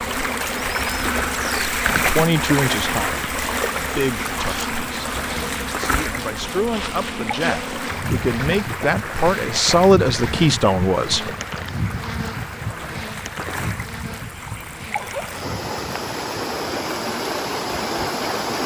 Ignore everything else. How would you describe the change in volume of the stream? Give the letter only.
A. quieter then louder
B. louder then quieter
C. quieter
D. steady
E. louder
A.